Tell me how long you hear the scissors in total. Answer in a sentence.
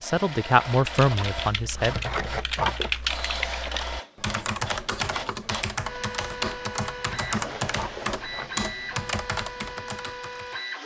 The scissors can be heard for 3 seconds in total.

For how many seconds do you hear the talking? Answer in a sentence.
The talking can be heard for 2 seconds in total.